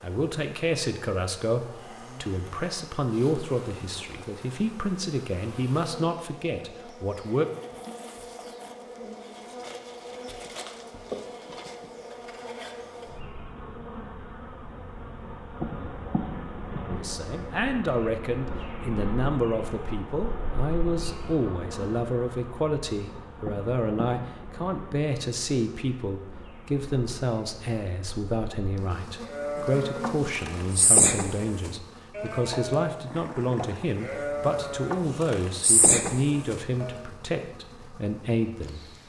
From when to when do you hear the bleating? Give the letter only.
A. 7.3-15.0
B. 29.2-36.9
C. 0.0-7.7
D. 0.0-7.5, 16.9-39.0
B.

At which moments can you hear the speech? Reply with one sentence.
You can hear the speech from 0.0 to 7.5 s and from 16.9 to 39.0 s.